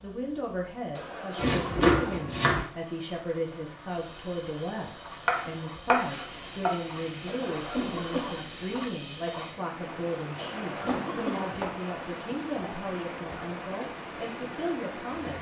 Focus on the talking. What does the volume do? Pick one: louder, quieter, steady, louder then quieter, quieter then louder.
steady.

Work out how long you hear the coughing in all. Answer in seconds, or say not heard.
3 s.